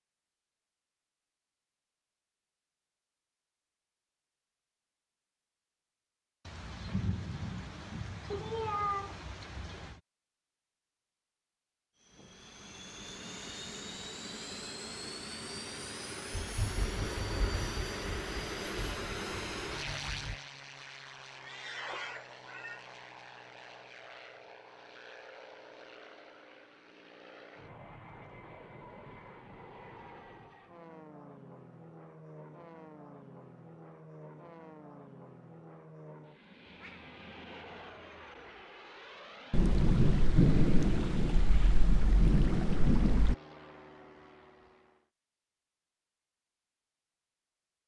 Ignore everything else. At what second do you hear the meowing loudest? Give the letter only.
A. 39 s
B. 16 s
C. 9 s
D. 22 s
C.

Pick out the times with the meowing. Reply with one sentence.
The meowing can be heard from 8.3 to 9.2 s, from 21.4 to 22.8 s and from 36.6 to 38.6 s.